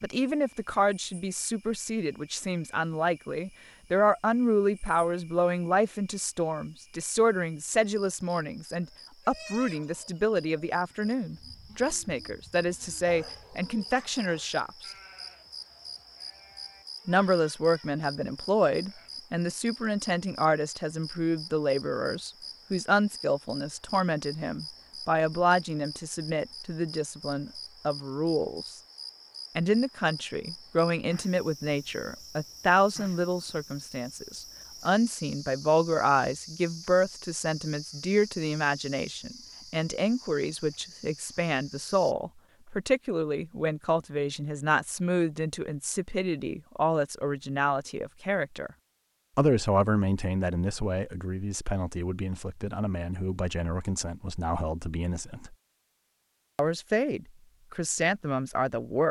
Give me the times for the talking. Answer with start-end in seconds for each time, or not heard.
0.0-14.7, 17.1-28.8, 29.6-48.7, 49.4-55.5, 56.5-59.0.